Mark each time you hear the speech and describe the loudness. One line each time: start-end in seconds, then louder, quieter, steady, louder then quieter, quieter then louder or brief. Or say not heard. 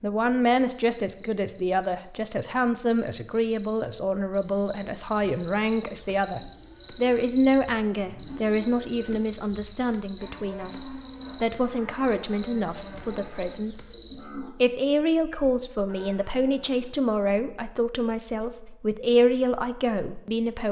0.0-20.6 steady.